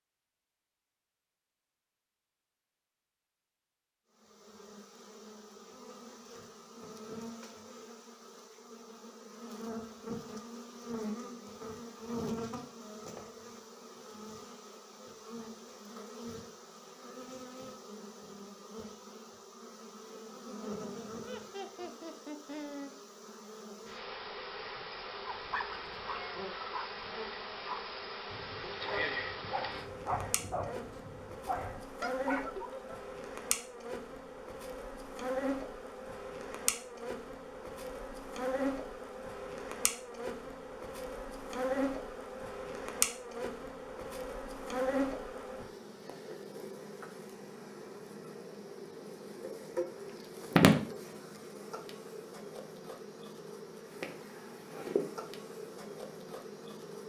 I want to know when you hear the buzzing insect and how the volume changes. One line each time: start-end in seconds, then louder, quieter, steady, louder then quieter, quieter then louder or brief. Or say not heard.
4.2-57.0 louder.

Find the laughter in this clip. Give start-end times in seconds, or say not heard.
21.2-22.9, 32.5-33.0.